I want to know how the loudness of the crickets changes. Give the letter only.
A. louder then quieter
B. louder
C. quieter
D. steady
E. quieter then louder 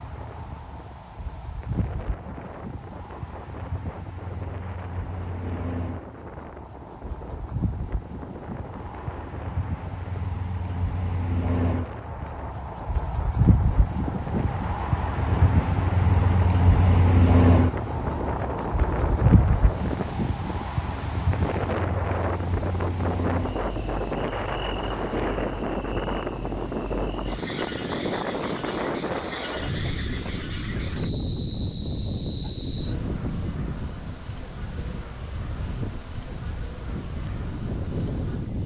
A.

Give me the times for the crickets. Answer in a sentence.
The crickets can be heard from 0.0 to 38.5 s.